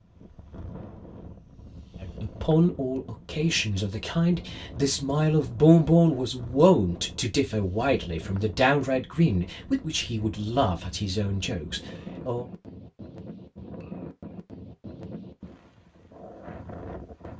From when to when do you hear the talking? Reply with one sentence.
You can hear the talking from 2.0 to 12.4 s.